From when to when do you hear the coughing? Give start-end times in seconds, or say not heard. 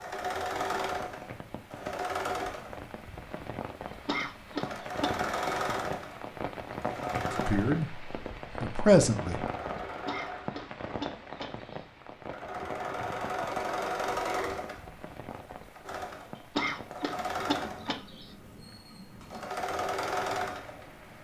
4.0-5.2, 9.8-11.8, 16.4-18.3.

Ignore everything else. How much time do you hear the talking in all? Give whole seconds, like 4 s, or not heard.
2 s.